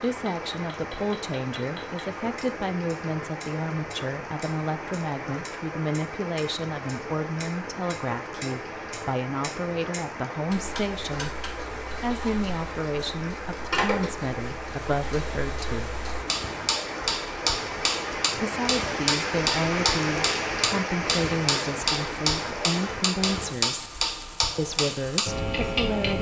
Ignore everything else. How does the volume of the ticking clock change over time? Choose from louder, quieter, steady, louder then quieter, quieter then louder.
louder.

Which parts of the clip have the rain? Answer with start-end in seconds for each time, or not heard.
0.0-26.1.